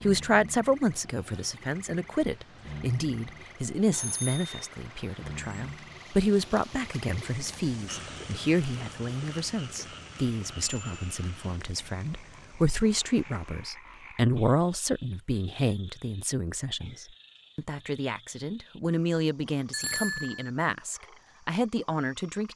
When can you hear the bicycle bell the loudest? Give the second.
20 s.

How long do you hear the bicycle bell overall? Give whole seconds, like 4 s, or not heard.
2 s.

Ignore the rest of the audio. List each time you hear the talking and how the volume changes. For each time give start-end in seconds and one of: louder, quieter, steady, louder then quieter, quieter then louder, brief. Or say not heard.
0.0-22.5 steady.